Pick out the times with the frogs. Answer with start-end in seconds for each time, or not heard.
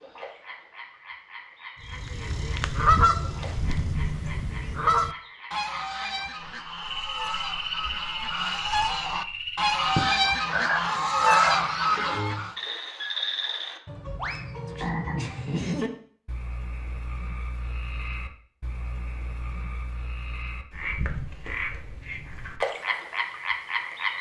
0.0-24.1.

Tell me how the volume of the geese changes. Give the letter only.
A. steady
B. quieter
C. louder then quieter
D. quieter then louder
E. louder
D.